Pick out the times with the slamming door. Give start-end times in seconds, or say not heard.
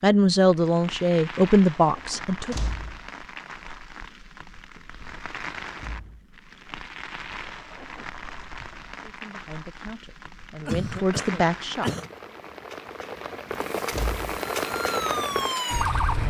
2.5-3.0, 5.8-6.2, 13.9-14.3.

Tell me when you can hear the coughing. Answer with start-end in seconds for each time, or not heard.
10.7-12.1.